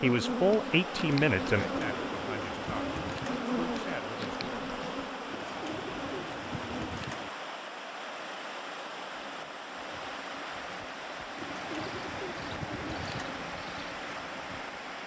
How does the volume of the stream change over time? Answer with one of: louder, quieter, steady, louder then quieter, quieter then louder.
steady.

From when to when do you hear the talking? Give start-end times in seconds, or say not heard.
0.0-4.7.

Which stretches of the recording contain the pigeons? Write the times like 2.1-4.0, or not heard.
1.6-3.5, 5.3-7.3, 11.3-13.4.